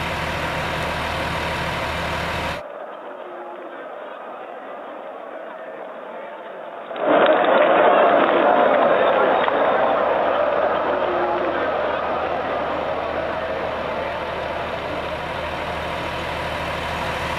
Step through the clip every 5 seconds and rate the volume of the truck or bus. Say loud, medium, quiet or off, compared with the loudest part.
loud, quiet, medium, loud.